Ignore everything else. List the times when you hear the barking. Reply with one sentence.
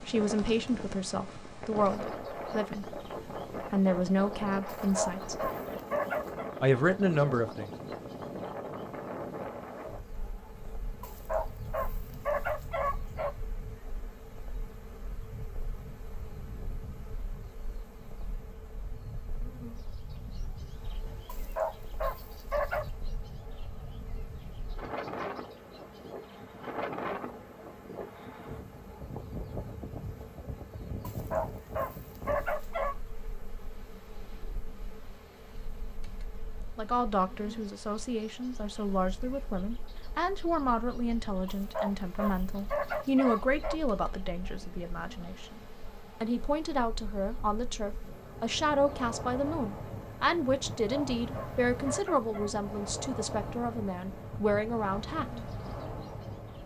The barking can be heard from 4.7 to 6.5 s, from 11.0 to 13.3 s, from 21.2 to 22.9 s, from 31.0 to 33.0 s, from 41.5 to 43.8 s and from 50.8 to 52.5 s.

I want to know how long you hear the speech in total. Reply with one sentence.
The speech can be heard for 25 seconds in total.